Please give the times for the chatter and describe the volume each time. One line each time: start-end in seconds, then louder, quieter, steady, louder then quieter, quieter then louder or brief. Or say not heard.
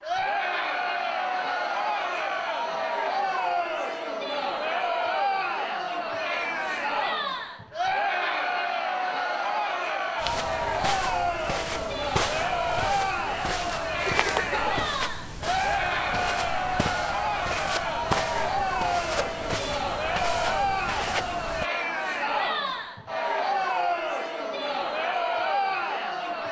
0.0-26.4 steady.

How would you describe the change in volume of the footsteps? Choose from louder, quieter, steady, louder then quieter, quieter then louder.
steady.